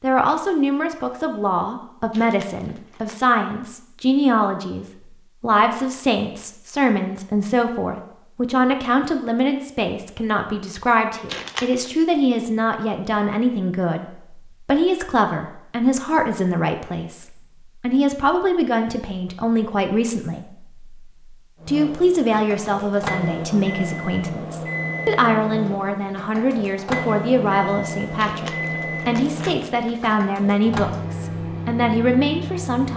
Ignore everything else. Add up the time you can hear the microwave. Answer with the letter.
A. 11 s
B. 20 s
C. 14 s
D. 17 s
A.